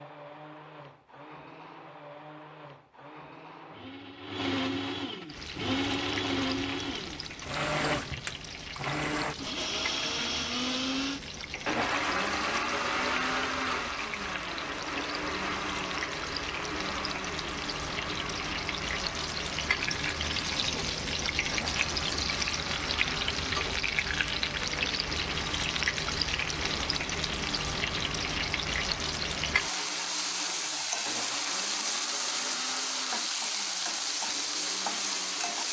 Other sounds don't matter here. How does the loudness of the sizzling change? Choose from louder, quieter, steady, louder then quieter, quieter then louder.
louder.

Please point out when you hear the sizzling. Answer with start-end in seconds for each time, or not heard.
5.2-35.6.